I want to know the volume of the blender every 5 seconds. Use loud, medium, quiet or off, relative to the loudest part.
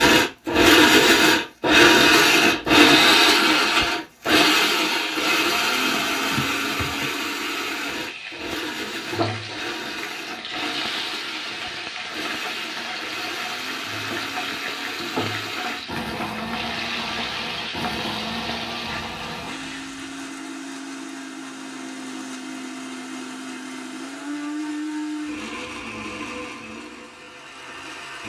loud, medium, quiet, quiet, quiet, quiet.